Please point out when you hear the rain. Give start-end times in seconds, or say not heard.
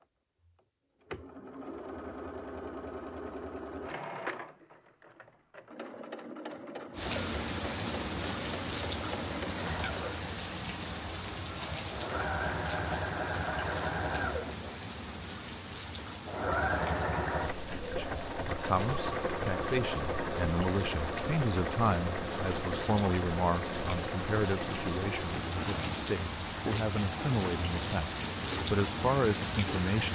6.9-30.1.